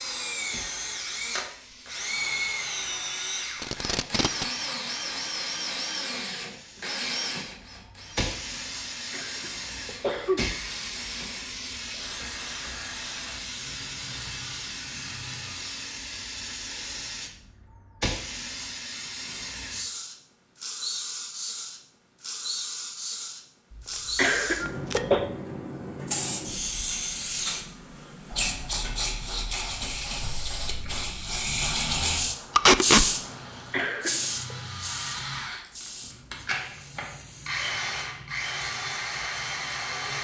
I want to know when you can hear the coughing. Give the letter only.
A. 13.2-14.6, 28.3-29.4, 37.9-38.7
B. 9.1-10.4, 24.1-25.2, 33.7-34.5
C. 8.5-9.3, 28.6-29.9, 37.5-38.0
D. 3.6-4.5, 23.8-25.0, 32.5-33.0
B.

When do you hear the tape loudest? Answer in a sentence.
The loudest moment of the tape is at 33 seconds.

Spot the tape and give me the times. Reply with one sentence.
You can hear the tape from 3.6 to 4.5 s, from 23.8 to 25.0 s and from 32.5 to 33.0 s.